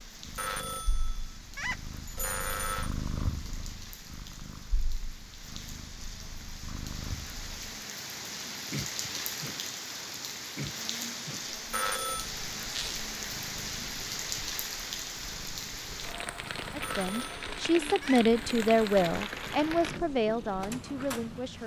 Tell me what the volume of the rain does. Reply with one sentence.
The loudness of the rain goes up.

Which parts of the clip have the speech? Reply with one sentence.
You can hear the speech from 16.7 to 21.6 s.